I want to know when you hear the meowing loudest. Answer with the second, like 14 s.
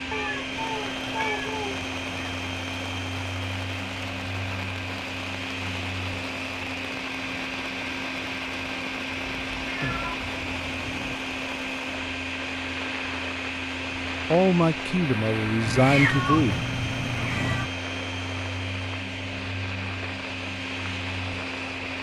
16 s.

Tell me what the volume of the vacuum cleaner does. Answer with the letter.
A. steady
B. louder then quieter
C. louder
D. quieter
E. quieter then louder
A.